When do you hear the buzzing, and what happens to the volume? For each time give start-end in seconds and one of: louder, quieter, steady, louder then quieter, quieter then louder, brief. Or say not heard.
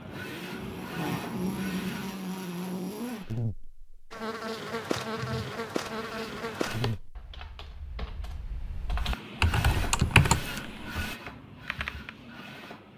0.0-7.2 steady.